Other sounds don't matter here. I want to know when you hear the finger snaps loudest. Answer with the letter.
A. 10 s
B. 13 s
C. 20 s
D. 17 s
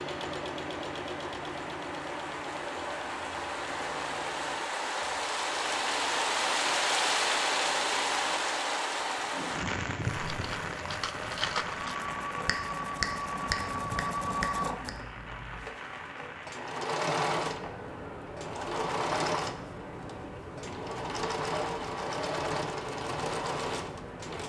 B.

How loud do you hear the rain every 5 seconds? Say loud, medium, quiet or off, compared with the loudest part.
medium, loud, medium, quiet, quiet.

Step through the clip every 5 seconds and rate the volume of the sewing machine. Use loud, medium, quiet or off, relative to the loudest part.
medium, quiet, loud, loud, loud.